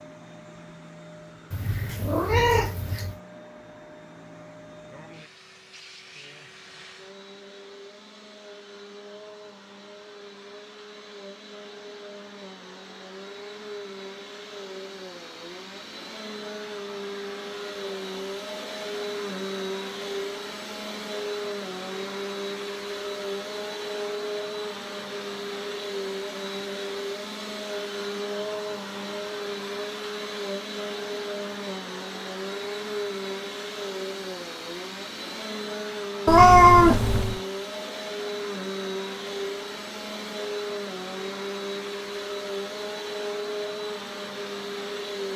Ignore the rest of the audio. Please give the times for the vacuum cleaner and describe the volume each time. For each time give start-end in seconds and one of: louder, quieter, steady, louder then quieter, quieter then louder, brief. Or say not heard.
0.0-45.3 louder.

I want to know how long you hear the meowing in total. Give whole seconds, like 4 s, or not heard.
3 s.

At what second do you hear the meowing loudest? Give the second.
37 s.